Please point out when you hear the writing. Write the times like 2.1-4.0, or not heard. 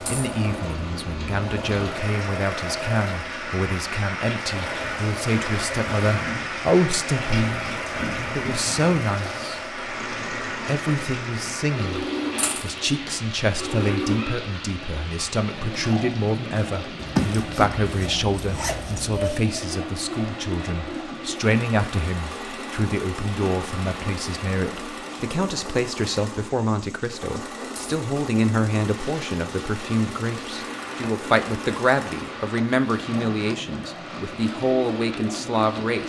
not heard.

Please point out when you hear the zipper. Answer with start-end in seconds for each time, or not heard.
16.9-19.4.